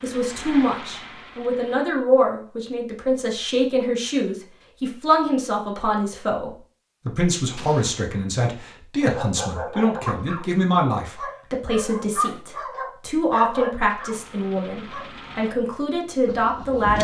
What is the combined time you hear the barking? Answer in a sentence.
You can hear the barking for 6 seconds altogether.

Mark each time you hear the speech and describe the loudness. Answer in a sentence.
You can hear the speech from 0.0 to 16.9 s, at a steady volume.